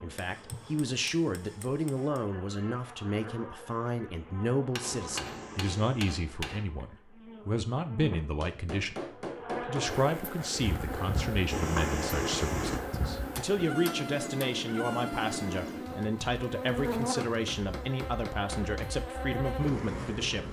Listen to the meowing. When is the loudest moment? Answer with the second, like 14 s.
12 s.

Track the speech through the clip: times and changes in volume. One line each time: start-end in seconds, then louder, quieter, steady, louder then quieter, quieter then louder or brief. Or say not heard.
0.0-20.4 steady.